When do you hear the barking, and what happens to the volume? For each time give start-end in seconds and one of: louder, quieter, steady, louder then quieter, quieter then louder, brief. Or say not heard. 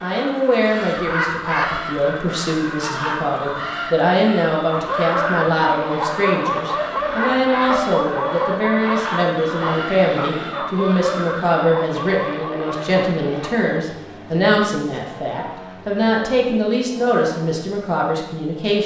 4.7-13.6 quieter.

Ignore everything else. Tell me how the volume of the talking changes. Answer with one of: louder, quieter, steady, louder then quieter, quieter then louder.
steady.